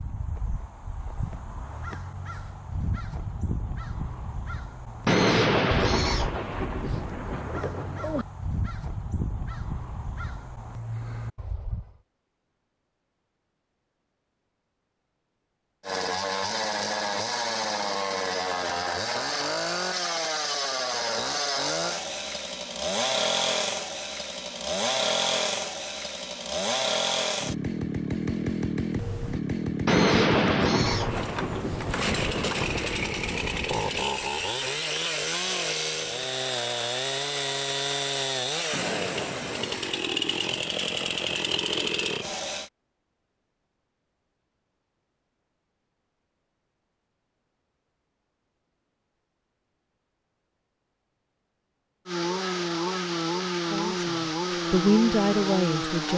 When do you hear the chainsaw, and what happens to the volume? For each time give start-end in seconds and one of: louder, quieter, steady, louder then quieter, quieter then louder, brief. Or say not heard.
15.8-42.7 steady
52.0-56.1 steady.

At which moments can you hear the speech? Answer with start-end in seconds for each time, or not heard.
53.7-56.1.